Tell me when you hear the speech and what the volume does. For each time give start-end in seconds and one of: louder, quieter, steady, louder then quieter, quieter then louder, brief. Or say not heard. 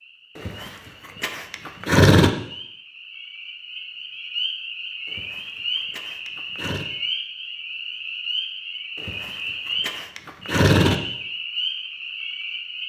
not heard.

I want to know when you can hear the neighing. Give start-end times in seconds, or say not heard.
0.3-2.3, 5.0-6.9, 9.0-11.0.